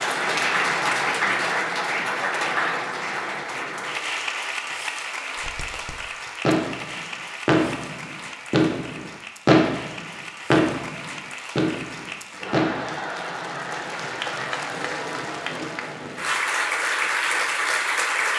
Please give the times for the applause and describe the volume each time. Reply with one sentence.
The applause can be heard from 0.0 to 18.3 s, getting quieter then louder.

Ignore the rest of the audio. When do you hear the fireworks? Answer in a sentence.
The fireworks can be heard from 5.3 to 13.0 s.